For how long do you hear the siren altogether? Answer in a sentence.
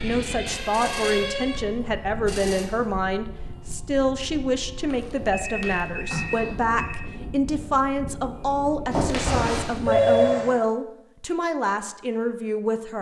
The siren can be heard for 2 seconds in total.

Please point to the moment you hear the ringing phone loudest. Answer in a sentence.
The volume of the ringing phone peaks at 10 seconds.